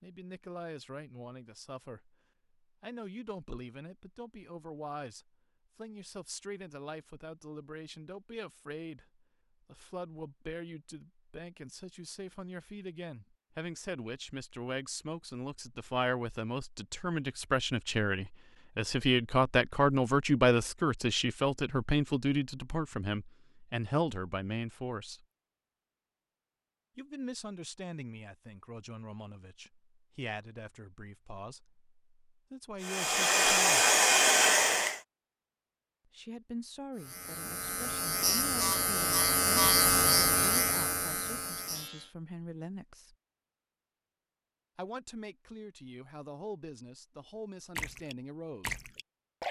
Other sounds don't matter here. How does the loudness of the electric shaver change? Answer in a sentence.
The loudness of the electric shaver goes up, then down.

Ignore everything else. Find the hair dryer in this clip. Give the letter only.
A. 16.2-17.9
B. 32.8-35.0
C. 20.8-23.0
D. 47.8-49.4
B.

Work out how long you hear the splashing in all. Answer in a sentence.
The splashing can be heard for 2 seconds in total.